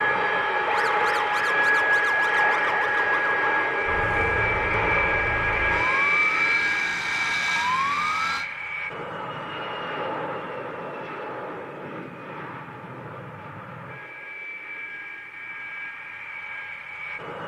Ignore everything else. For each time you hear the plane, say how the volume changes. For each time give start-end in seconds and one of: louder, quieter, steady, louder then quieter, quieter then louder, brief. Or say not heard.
0.0-17.4 quieter.